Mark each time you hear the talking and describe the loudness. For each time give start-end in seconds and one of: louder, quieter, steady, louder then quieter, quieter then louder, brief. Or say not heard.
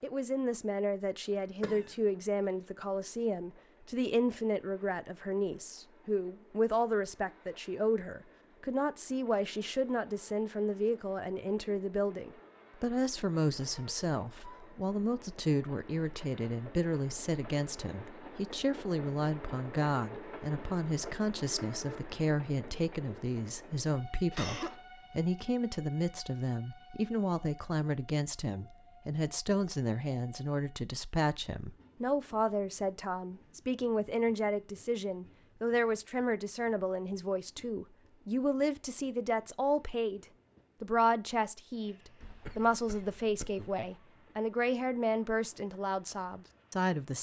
0.0-47.1 steady.